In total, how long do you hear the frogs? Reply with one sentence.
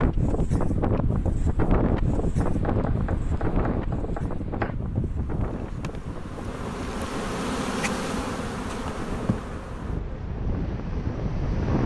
The frogs can't be heard in this clip.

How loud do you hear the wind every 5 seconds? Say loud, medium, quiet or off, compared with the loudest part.
loud, medium, loud.